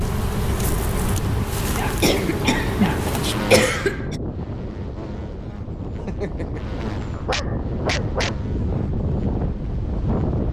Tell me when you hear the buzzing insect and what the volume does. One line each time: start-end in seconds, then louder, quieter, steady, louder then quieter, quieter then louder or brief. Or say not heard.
0.0-10.4 quieter.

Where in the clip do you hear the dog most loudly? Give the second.
8 s.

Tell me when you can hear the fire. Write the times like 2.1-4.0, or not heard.
not heard.